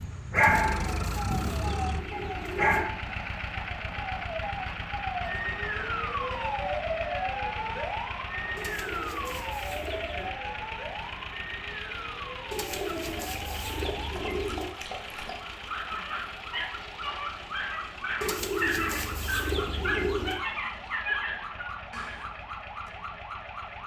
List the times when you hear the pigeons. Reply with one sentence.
The pigeons can be heard from 0.3 to 2.9 s, from 8.6 to 10.3 s, from 12.5 to 14.8 s and from 18.2 to 20.4 s.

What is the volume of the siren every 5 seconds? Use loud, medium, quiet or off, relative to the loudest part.
loud, loud, medium, medium, medium.